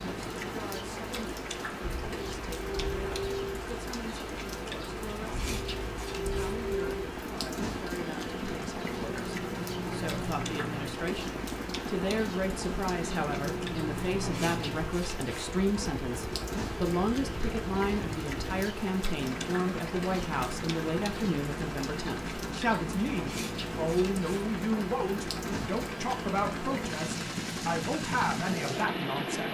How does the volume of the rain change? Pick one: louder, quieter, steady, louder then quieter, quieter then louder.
steady.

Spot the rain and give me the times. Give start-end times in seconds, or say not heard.
0.0-29.5.